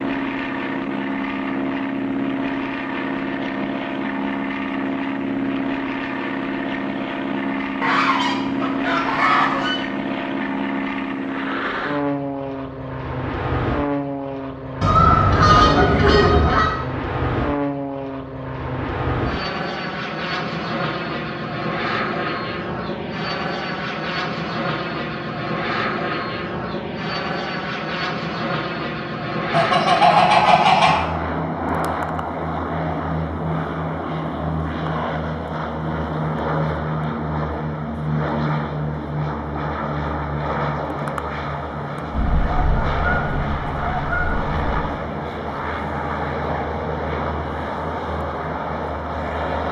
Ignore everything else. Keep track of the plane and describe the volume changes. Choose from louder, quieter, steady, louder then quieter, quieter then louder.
steady.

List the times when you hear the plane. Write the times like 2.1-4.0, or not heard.
0.0-49.6.